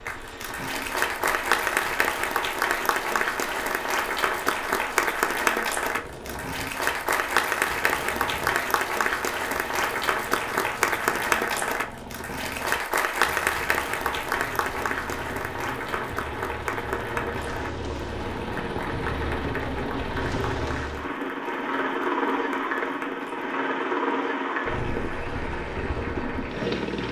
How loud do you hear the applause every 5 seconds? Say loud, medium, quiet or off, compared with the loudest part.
loud, loud, loud, medium, medium, medium.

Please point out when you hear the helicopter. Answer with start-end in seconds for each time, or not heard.
0.0-27.0.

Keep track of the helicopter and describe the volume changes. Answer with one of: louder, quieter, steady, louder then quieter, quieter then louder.
louder.